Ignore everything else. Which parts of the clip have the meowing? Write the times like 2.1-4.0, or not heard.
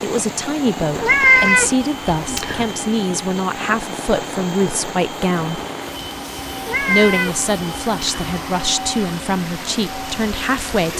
0.9-2.6, 6.6-8.2.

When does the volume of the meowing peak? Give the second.
1 s.